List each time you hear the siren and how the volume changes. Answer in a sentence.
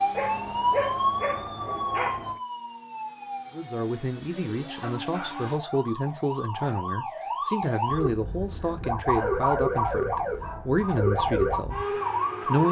You can hear the siren from 0.0 to 12.6 s, getting quieter then louder.